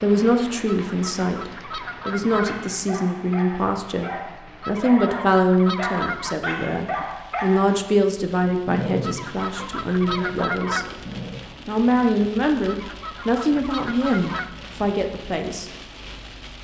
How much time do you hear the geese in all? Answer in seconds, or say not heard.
7 s.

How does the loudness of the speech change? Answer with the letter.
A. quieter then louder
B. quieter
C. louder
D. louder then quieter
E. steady
E.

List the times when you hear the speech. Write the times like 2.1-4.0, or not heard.
0.0-10.8, 11.7-15.7.